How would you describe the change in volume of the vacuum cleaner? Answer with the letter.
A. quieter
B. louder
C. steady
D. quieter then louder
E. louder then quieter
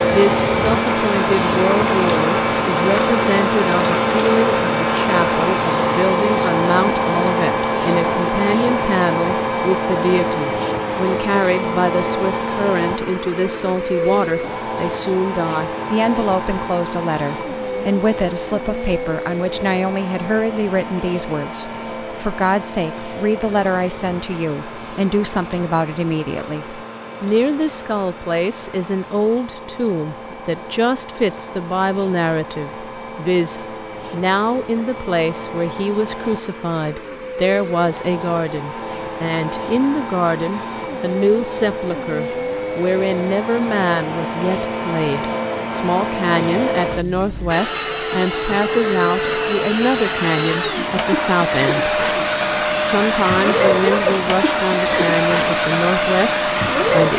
D.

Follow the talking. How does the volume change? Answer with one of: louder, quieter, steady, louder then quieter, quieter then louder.
steady.